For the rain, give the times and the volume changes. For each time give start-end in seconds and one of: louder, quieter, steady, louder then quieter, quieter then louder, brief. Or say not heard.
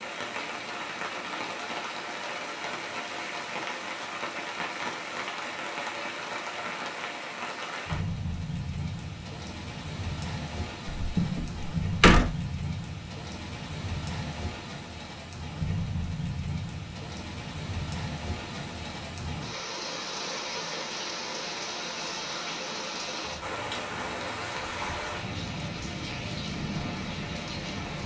0.0-28.0 steady.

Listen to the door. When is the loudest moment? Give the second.
12 s.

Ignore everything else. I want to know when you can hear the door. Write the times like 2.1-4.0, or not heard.
10.8-12.3.